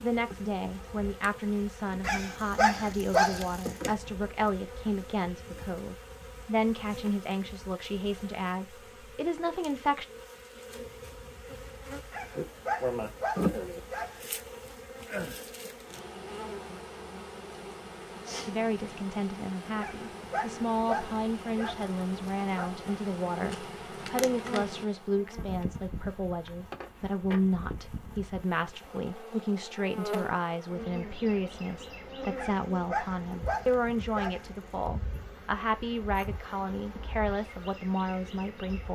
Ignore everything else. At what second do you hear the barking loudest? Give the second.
3 s.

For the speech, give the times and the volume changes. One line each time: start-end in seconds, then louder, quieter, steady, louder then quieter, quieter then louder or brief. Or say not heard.
0.0-10.1 steady
18.4-38.8 steady.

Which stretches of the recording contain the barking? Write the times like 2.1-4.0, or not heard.
2.0-4.0, 12.1-14.2, 19.8-22.7, 32.4-34.9.